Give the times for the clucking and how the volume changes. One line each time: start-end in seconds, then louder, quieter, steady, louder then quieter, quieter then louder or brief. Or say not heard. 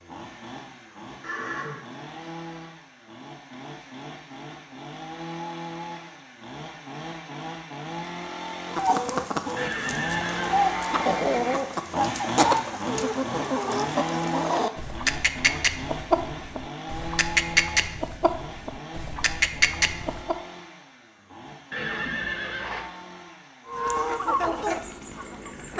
8.7-20.4 steady
23.6-25.7 brief.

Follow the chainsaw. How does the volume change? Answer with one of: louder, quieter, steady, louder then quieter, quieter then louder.
louder then quieter.